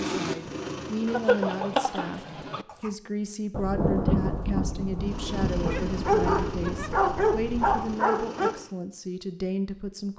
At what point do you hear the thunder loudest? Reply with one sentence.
The loudest moment of the thunder is at 4 seconds.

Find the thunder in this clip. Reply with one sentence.
You can hear the thunder from 3.5 to 8.0 s.